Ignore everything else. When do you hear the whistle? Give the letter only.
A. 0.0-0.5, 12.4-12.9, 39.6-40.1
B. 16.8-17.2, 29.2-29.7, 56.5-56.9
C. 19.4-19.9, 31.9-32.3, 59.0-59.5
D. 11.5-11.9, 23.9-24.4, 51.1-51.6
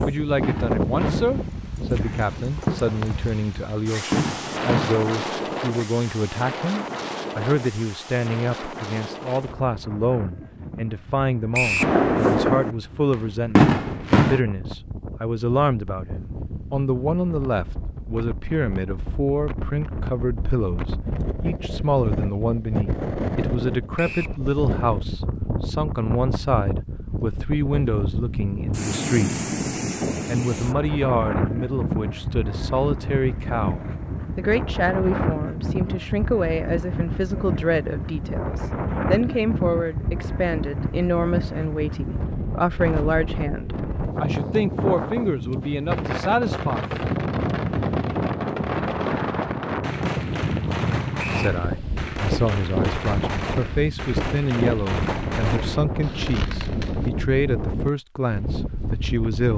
D.